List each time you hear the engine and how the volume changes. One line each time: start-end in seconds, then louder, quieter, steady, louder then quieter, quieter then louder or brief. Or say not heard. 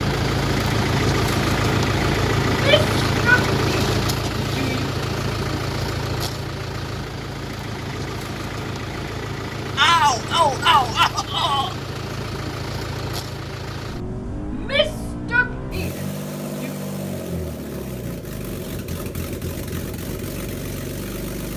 0.0-21.5 quieter.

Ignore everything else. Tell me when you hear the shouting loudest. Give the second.
10 s.